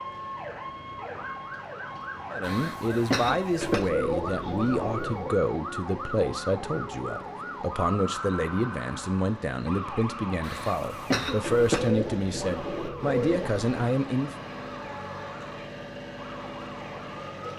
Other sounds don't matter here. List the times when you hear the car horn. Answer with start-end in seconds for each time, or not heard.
not heard.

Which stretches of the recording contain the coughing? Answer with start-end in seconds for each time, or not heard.
2.4-3.9, 10.4-11.9.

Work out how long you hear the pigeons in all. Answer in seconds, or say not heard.
4 s.